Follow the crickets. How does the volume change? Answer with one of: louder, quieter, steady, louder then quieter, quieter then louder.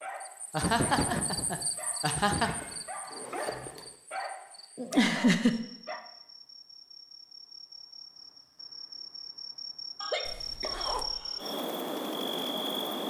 quieter then louder.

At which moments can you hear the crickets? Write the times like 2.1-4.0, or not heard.
0.0-13.0.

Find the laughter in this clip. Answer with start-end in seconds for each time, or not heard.
0.5-2.5, 4.8-5.6, 10.0-11.4.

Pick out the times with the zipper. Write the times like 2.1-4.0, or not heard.
2.5-4.0, 10.2-11.3.